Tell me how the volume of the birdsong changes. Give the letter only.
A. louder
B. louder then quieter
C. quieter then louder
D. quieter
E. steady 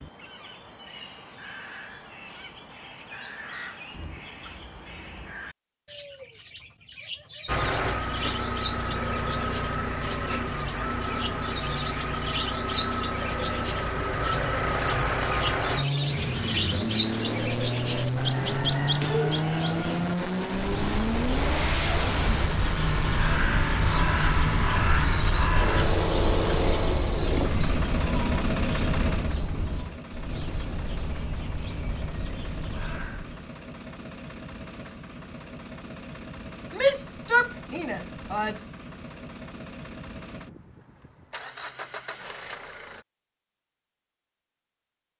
B.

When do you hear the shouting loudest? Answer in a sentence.
The volume of the shouting peaks at 37 seconds.